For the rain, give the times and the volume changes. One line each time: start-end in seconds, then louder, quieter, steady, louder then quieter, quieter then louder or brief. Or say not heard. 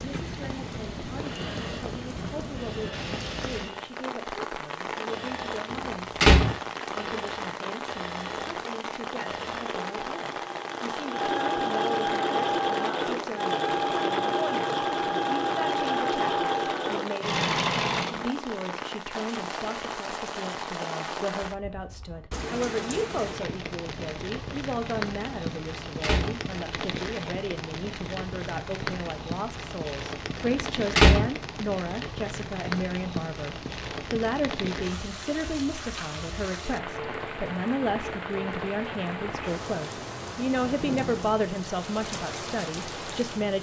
0.0-43.5 steady.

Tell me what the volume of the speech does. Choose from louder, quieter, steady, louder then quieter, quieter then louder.
louder.